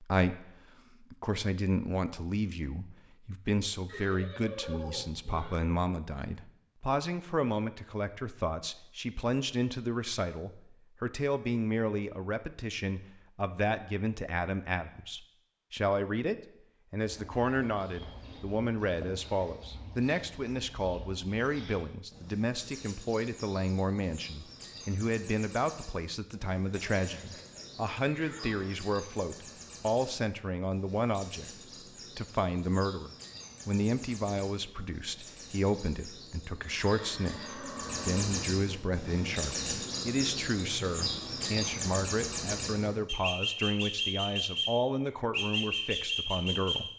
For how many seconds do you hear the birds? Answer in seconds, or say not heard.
30 s.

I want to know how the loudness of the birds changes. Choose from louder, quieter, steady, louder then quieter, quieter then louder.
louder.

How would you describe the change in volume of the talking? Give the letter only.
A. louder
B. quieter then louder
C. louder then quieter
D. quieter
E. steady
E.